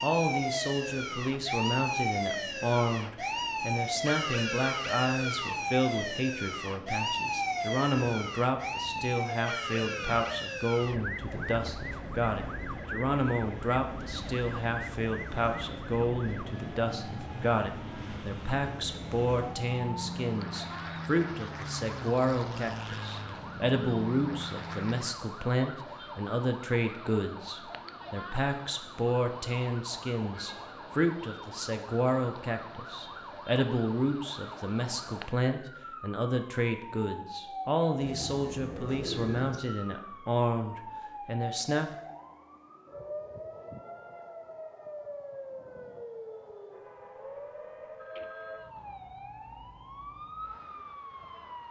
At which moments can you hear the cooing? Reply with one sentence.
You can hear the cooing from 38.0 to 39.6 s.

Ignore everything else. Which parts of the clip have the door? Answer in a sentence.
You can't hear the door here.